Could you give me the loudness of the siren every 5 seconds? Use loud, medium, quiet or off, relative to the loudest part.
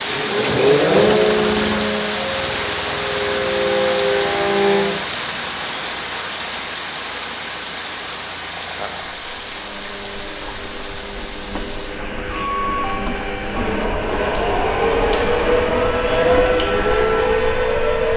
loud, off, medium, loud.